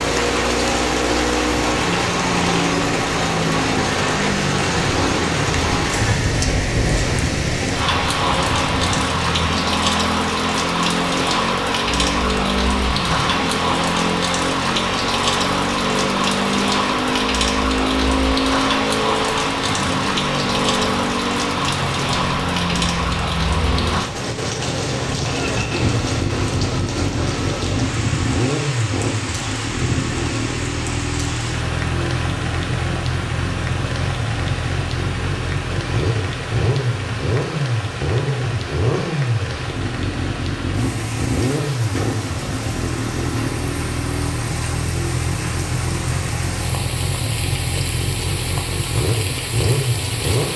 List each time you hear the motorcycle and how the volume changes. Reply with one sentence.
You can hear the motorcycle from 0.0 to 50.5 s, at a steady volume.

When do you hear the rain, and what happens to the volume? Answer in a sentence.
The rain can be heard from 0.0 to 50.5 s, getting quieter.